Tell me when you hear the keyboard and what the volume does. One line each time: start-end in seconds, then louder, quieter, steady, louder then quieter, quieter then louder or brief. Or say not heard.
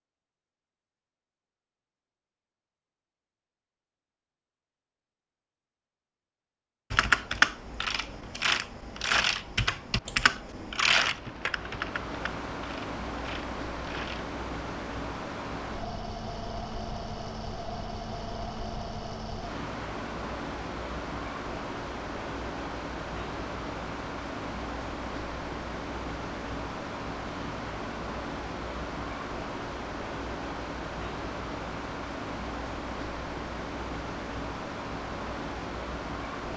6.9-14.2 quieter.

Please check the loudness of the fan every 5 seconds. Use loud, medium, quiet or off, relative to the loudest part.
off, quiet, loud, loud, loud, loud, loud, loud.